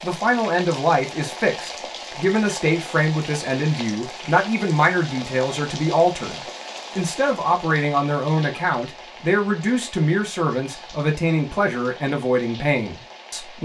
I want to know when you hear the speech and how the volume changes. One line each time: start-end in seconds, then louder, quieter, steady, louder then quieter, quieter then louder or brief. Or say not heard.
0.0-13.6 steady.